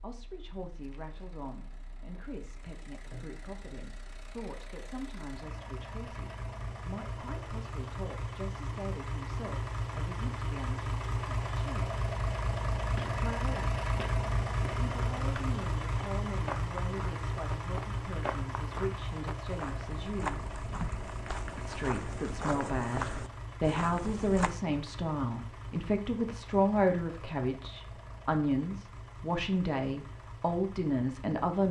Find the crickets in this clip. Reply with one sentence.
The crickets can't be heard in this clip.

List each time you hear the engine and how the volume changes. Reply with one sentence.
The engine can be heard from 0.0 to 31.6 s, getting louder then quieter.